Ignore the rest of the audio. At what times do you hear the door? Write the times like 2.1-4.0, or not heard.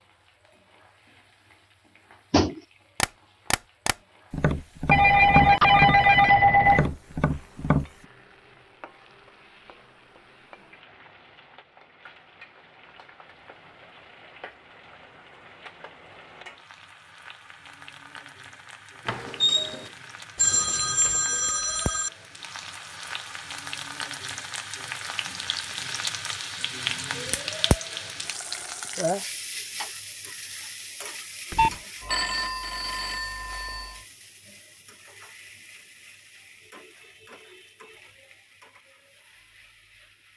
19.1-19.9.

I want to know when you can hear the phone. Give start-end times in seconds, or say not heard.
4.9-6.9, 20.4-22.1, 31.5-34.0.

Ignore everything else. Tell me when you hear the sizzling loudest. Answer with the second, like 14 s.
27 s.